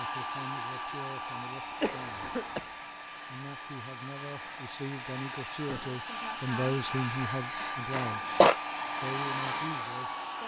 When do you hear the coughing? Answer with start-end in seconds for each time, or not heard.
1.2-2.8, 7.9-8.6.